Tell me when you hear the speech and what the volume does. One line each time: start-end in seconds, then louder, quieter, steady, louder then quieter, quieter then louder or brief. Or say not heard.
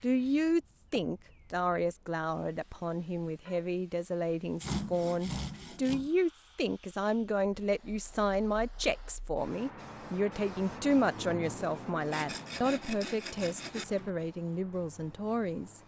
0.0-15.8 steady.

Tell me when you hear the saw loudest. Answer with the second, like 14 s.
5 s.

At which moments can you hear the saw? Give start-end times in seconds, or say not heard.
4.6-6.1, 12.1-14.1.